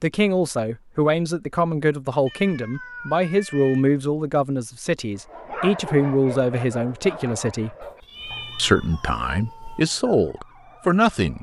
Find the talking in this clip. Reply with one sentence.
The talking can be heard from 0.0 to 7.8 s and from 8.6 to 11.3 s.